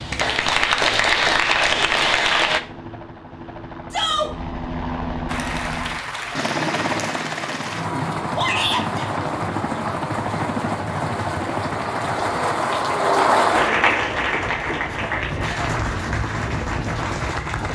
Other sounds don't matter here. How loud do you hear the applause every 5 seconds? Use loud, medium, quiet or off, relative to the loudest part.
loud, medium, loud, medium.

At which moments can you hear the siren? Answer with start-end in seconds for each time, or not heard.
not heard.